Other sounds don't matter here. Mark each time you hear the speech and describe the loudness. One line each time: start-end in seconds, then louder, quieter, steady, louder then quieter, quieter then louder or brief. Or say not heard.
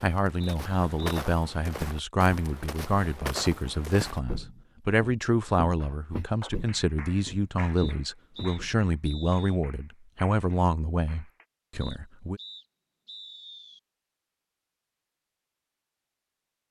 0.0-12.4 steady.